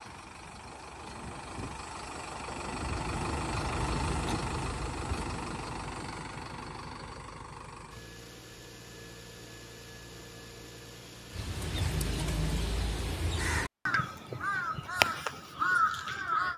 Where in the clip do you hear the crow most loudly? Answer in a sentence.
The volume of the crow peaks at 16 seconds.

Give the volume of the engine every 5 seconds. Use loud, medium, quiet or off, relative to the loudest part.
loud, medium, medium, off.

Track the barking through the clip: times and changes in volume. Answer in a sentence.
The barking can't be heard in this clip.